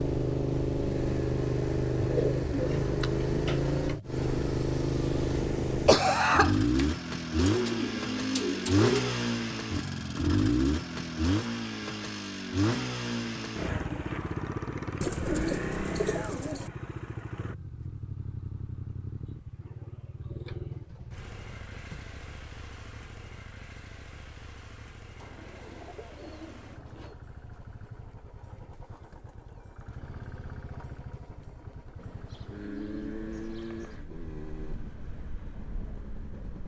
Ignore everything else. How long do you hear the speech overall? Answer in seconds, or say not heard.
not heard.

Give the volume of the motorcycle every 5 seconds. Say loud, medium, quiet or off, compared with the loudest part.
loud, loud, loud, medium, quiet, quiet, quiet, quiet.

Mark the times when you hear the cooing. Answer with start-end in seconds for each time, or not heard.
1.9-4.2, 7.3-9.2, 15.0-16.7, 20.7-22.1, 25.1-27.1, 31.9-34.1.